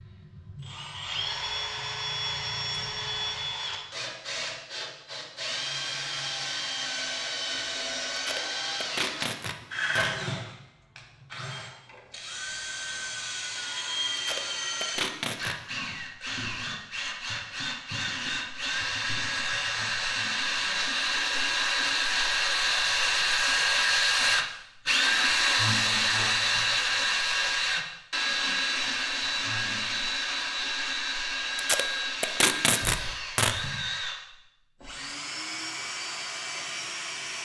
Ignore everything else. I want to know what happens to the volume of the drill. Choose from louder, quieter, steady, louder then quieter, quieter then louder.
louder then quieter.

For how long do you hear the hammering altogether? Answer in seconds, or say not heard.
not heard.